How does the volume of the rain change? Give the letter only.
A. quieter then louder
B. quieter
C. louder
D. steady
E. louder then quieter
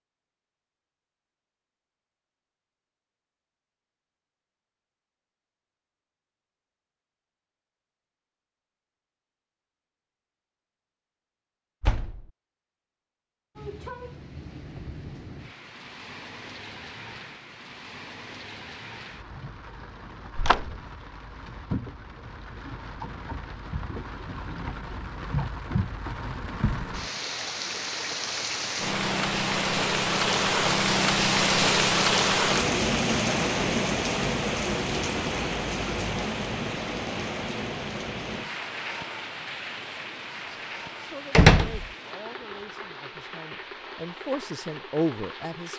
E.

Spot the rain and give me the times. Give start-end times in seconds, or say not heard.
13.6-45.7.